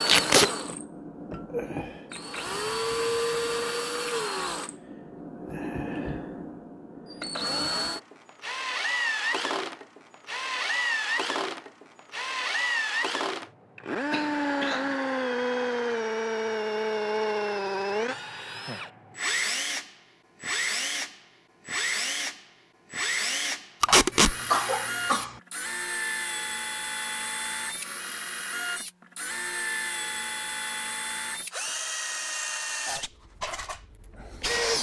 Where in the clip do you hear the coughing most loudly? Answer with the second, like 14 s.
25 s.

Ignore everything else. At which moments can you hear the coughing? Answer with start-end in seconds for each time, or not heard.
0.1-0.8, 14.1-14.9, 23.9-25.4.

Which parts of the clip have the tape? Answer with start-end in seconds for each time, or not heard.
0.1-0.5, 23.8-24.4.